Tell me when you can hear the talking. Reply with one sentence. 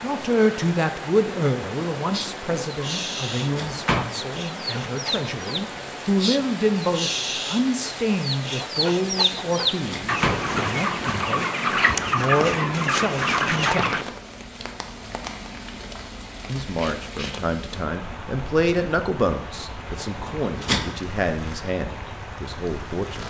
You can hear the talking from 0.0 to 14.0 s and from 16.4 to 23.2 s.